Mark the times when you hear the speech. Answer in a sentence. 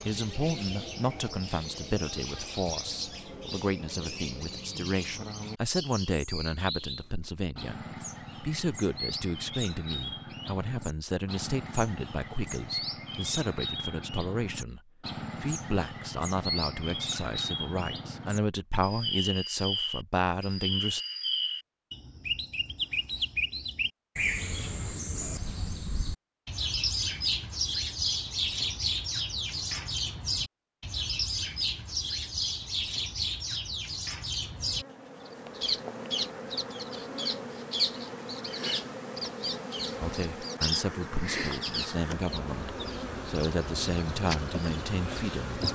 The speech can be heard from 0.1 to 21.0 s and from 40.0 to 45.6 s.